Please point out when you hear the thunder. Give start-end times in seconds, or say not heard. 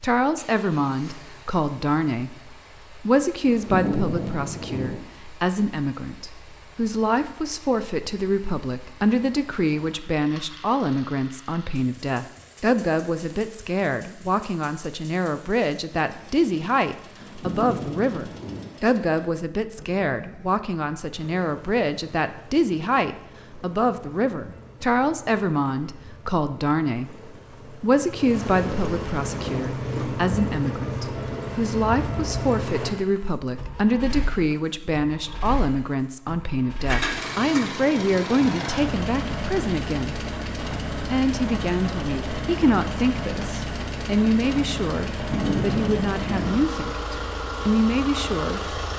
3.5-5.0, 17.2-18.7, 45.1-46.6.